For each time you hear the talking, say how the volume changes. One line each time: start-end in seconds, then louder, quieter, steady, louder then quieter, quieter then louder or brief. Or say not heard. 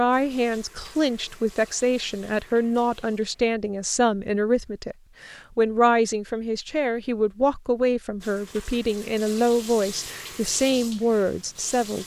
0.0-12.0 steady.